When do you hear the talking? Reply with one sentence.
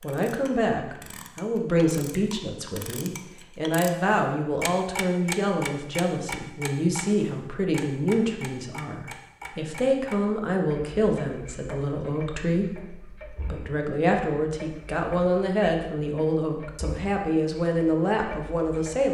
You can hear the talking from 0.0 to 19.0 s.